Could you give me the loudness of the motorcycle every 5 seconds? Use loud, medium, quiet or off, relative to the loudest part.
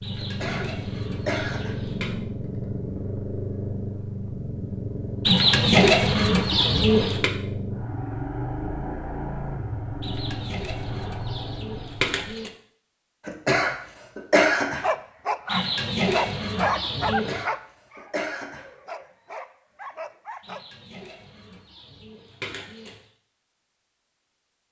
loud, loud, loud, off, off.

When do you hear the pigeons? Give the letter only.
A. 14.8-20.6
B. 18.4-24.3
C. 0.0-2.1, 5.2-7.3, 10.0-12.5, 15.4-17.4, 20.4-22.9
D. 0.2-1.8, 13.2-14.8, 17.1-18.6
C.